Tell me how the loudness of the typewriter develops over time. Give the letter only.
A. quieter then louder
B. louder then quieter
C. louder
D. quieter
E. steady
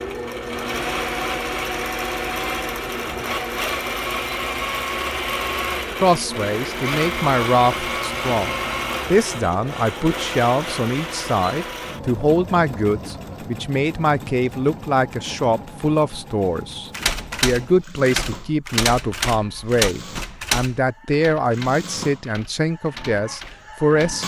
D.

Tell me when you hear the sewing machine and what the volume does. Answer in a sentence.
You can hear the sewing machine from 0.0 to 24.2 s, getting quieter.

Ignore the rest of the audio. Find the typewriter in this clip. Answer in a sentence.
The typewriter can be heard from 16.9 to 24.2 s.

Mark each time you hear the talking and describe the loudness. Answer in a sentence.
The talking can be heard from 6.0 to 24.2 s, at a steady volume.